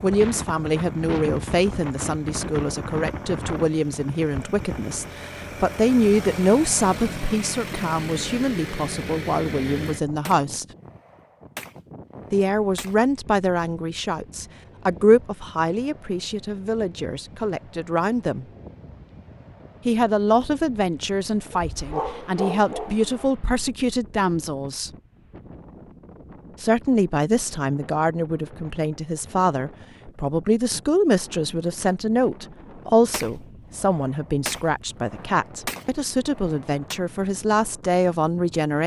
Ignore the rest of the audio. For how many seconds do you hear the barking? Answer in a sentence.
The barking can be heard for 2 seconds in total.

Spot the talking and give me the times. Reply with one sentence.
The talking can be heard from 0.0 to 10.7 s, from 12.3 to 18.4 s, from 19.9 to 24.9 s and from 26.6 to 38.8 s.